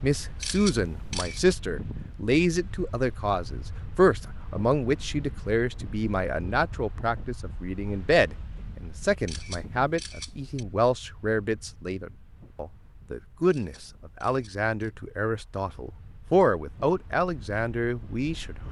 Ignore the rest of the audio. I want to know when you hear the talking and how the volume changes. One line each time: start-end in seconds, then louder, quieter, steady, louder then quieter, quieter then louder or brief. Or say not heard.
0.0-18.6 steady.